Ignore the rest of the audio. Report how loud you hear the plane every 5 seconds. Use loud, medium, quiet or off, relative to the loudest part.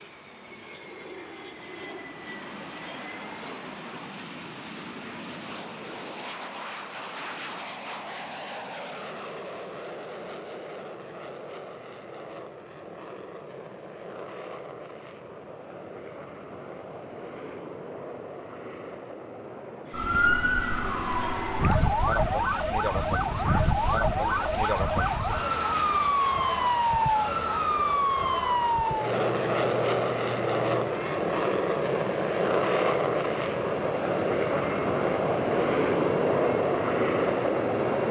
quiet, quiet, quiet, quiet, quiet, medium, loud, loud.